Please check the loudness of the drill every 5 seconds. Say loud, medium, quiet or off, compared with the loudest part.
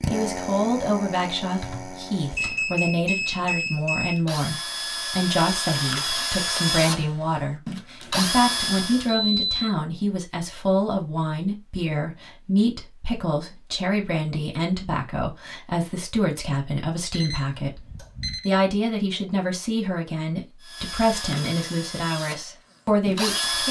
medium, loud, off, off, loud.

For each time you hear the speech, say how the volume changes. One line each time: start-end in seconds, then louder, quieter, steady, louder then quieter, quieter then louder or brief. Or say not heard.
0.1-23.6 steady.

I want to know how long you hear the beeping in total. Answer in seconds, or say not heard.
6 s.